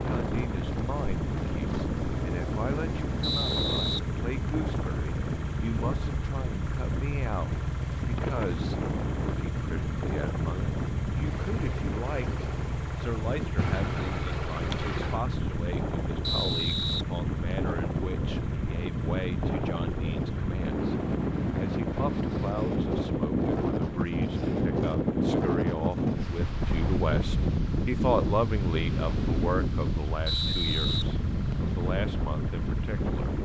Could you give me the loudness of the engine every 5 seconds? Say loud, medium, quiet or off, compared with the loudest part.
loud, loud, loud, loud, medium, medium, medium.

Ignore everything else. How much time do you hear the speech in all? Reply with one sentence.
You can hear the speech for 33 seconds altogether.